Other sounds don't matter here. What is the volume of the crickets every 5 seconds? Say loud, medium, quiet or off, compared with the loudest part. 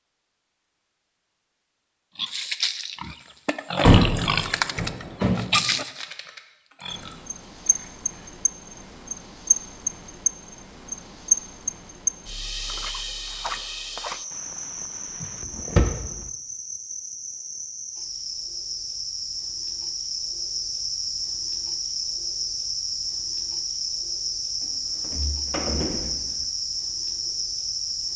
off, loud, loud, medium, loud, loud.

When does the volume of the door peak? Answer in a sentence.
The loudest moment of the door is at 4 seconds.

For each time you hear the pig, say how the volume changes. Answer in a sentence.
You can hear the pig from 2.1 to 8.1 s, getting louder then quieter.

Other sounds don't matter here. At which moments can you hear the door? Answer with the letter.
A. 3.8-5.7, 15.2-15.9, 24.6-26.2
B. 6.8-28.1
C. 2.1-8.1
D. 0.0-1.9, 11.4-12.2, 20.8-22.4
A.